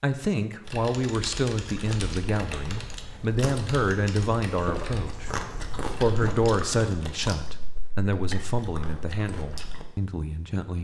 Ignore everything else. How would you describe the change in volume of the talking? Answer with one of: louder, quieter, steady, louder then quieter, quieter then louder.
quieter.